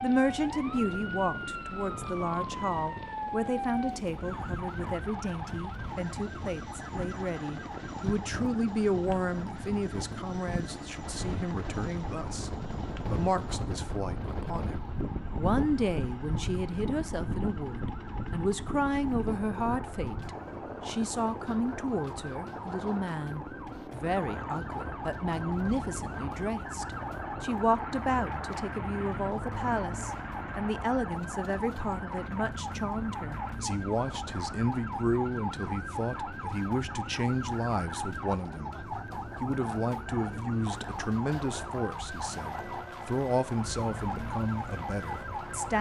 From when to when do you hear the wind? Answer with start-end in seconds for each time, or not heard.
0.0-34.8.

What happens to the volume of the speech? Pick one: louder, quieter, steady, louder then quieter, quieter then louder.
steady.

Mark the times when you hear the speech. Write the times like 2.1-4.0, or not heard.
0.0-45.7.